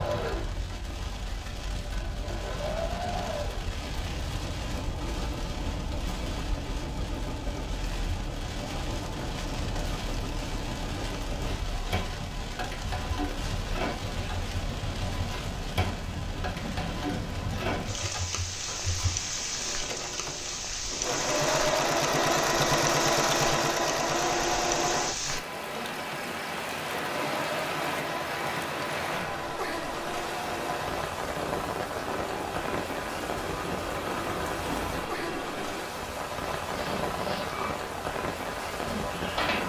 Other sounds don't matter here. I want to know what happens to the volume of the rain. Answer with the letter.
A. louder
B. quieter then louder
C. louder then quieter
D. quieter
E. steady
A.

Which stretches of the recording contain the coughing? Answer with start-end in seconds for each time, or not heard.
not heard.